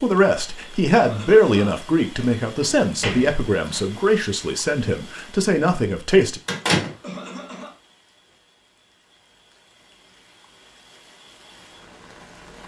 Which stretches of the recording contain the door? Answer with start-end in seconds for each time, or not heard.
2.6-3.9, 6.5-7.0.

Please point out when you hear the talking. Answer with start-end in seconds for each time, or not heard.
0.0-6.4.